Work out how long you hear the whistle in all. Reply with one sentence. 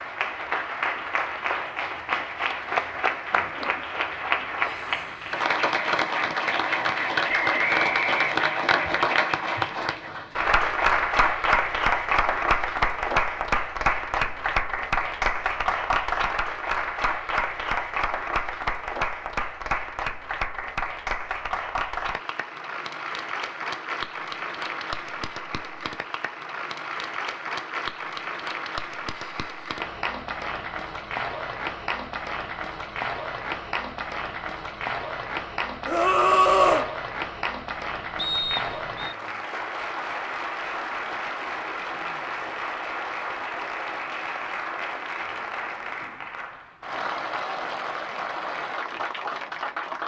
You can hear the whistle for 2 seconds altogether.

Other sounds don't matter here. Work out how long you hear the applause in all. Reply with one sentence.
You can hear the applause for 50 seconds altogether.